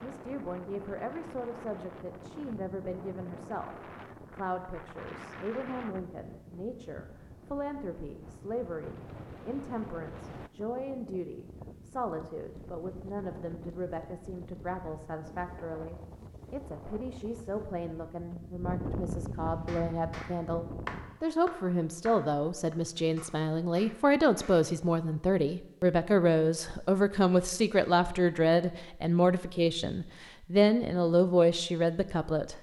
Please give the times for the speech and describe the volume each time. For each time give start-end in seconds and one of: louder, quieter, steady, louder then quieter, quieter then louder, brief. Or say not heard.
0.0-32.5 louder.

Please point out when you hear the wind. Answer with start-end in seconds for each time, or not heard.
0.0-21.2.